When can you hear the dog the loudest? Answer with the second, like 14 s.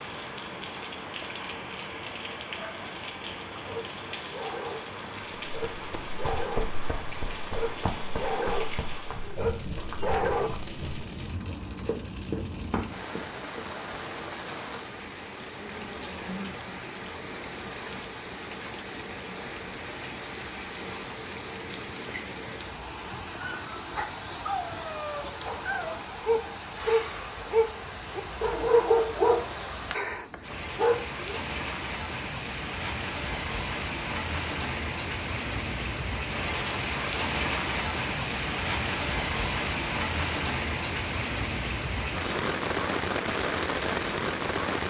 29 s.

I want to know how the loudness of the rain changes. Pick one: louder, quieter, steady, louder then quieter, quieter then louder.
louder.